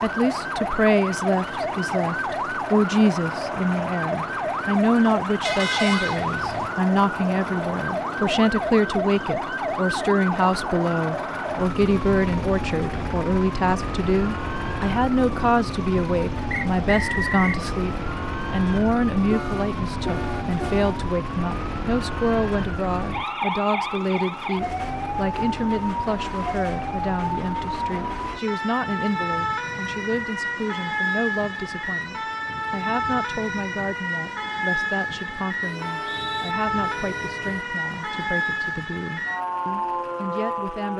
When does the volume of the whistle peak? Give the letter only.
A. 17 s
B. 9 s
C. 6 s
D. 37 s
A.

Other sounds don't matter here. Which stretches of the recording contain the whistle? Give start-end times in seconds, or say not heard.
16.5-17.6, 35.9-36.5.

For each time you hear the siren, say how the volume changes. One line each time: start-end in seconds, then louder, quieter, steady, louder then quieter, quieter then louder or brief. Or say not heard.
0.0-40.9 steady.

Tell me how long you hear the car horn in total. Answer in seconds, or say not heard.
5 s.